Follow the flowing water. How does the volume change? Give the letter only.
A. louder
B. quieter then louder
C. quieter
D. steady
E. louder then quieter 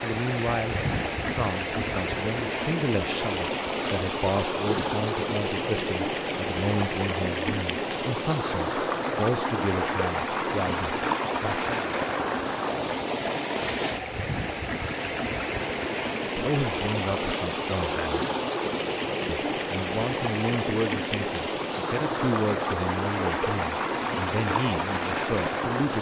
D.